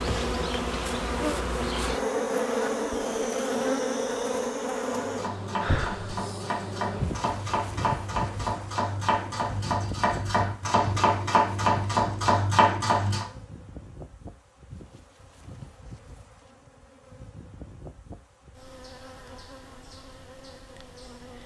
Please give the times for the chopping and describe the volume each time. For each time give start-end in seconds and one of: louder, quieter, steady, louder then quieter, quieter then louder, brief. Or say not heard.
4.9-13.2 louder.